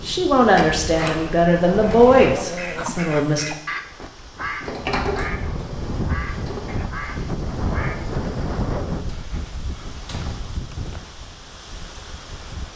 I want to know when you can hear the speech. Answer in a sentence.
The speech can be heard from 0.1 to 3.5 s.